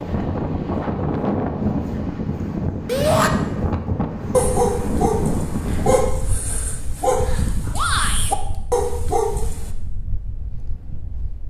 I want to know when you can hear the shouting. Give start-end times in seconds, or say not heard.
2.9-3.3, 7.7-8.3.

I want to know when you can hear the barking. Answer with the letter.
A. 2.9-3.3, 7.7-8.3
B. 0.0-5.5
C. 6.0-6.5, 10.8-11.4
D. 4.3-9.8
D.